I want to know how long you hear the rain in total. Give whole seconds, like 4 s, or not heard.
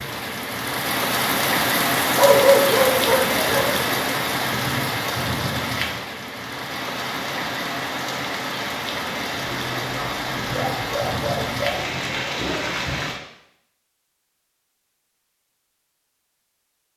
13 s.